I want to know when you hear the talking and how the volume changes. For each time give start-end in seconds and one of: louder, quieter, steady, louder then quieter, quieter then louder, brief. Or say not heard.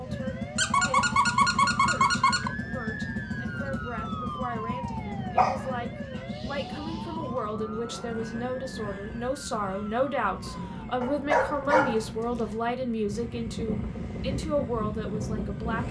0.0-15.8 louder.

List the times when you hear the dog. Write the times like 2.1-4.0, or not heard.
0.6-2.5, 5.3-6.6, 11.0-12.4.